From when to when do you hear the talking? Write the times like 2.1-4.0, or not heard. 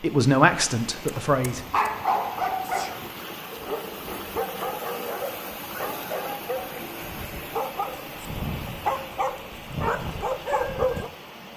0.0-1.6.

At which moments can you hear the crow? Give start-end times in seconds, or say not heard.
not heard.